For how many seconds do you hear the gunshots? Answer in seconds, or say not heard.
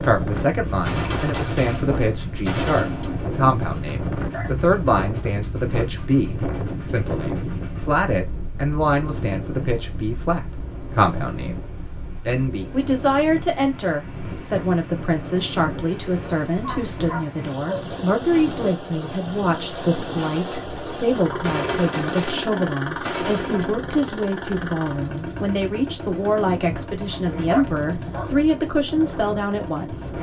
5 s.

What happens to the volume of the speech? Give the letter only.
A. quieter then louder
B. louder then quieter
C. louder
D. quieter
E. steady
E.